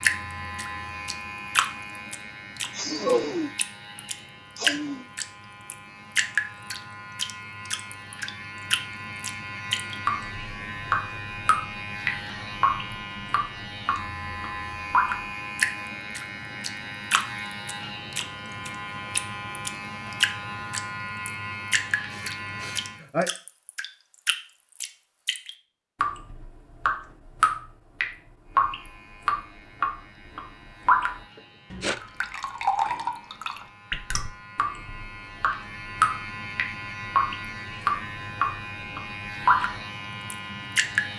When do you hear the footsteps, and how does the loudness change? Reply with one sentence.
The footsteps can't be heard in this clip.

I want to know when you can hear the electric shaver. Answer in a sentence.
The electric shaver can be heard from 0.0 to 23.1 s and from 28.4 to 41.1 s.